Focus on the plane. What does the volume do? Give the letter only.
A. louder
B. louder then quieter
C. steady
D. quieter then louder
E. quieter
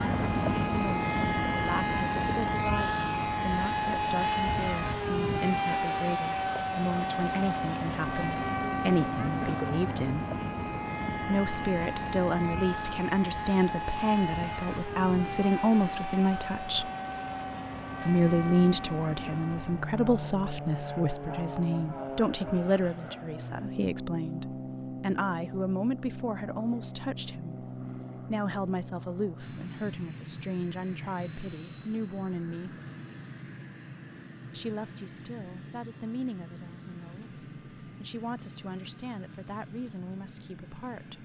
E.